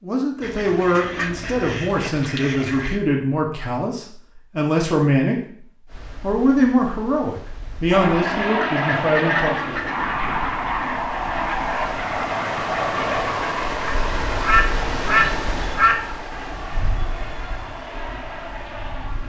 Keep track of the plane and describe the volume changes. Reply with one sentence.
The loudness of the plane goes down.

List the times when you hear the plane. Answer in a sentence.
You can hear the plane from 7.9 to 19.2 s.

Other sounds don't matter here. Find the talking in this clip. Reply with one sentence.
You can hear the talking from 0.0 to 9.8 s.